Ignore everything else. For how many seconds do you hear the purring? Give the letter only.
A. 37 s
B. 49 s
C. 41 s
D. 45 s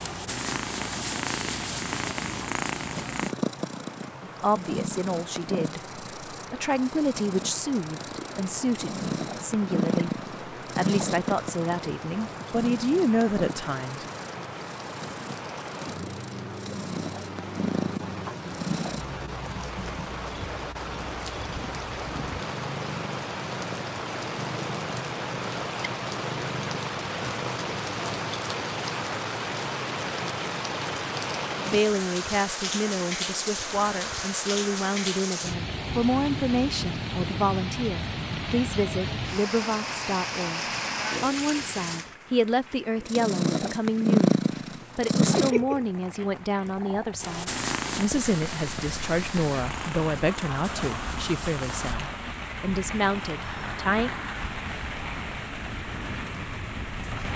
A.